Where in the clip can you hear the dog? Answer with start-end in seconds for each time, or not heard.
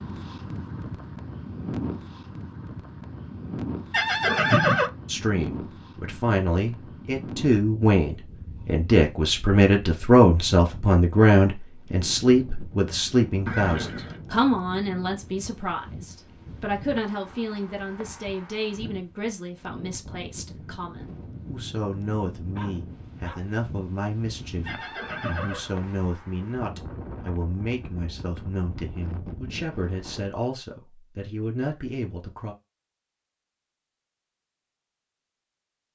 22.6-23.4.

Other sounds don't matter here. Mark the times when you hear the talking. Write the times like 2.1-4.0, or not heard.
5.0-32.5.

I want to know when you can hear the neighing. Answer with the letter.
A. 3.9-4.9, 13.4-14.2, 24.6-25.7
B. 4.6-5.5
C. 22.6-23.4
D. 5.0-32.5
A.